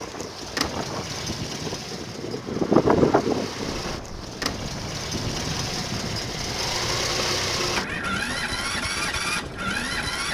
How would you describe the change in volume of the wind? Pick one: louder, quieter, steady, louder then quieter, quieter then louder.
louder then quieter.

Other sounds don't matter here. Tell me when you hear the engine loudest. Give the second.
7 s.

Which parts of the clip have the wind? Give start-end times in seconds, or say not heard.
0.0-10.2.